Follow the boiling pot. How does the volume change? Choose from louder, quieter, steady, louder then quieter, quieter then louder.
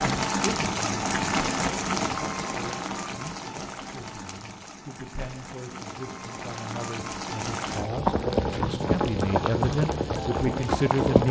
quieter then louder.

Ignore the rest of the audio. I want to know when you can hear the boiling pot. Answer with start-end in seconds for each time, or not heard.
0.0-11.2.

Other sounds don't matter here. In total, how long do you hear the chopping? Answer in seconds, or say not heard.
not heard.